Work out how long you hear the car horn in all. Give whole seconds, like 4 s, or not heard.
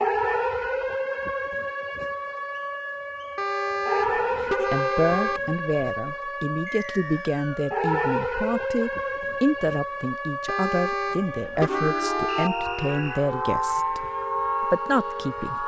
4 s.